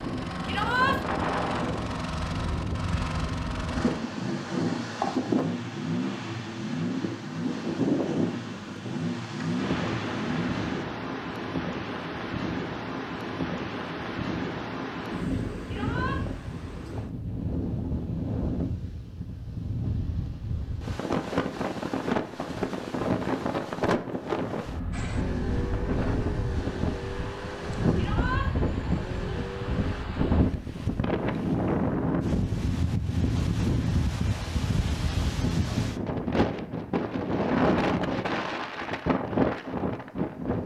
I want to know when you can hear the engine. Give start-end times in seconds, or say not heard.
0.0-10.8, 24.9-30.1.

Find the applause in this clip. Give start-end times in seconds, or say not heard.
not heard.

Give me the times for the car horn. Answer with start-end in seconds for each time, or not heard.
not heard.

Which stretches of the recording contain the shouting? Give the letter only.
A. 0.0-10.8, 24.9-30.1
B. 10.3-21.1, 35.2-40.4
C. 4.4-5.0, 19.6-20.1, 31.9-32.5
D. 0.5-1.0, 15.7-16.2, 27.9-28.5
D.